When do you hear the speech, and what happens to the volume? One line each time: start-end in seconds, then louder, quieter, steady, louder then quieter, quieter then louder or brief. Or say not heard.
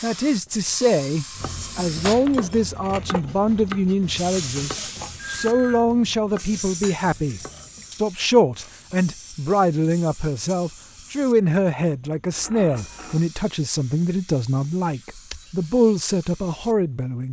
0.0-17.2 steady.